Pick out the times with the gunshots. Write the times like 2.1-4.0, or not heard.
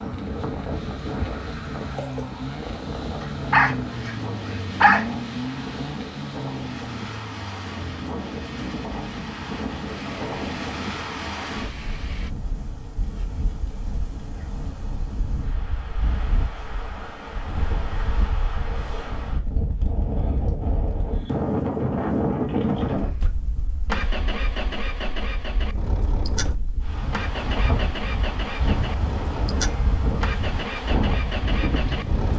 not heard.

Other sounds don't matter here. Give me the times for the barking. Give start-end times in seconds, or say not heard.
3.2-5.0.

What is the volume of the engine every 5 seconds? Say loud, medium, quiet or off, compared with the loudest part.
loud, loud, medium, off, loud, loud, loud.